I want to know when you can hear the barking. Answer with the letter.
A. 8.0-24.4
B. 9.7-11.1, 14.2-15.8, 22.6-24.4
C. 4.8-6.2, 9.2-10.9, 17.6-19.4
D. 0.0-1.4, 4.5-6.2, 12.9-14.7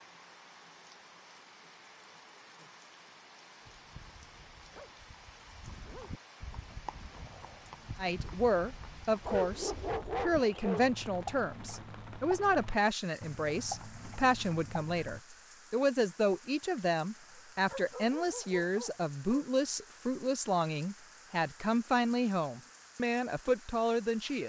C.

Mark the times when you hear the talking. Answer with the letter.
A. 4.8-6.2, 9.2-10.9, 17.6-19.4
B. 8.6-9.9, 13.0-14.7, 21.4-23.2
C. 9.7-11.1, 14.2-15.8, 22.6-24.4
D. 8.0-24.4
D.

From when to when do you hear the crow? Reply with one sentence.
You can't hear the crow here.